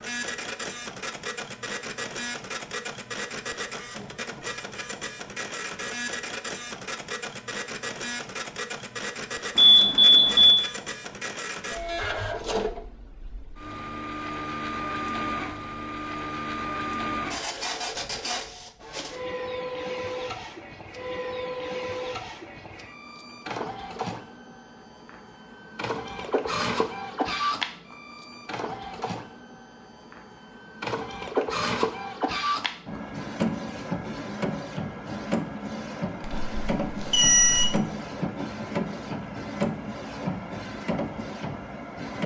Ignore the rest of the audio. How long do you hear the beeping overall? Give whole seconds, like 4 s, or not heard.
3 s.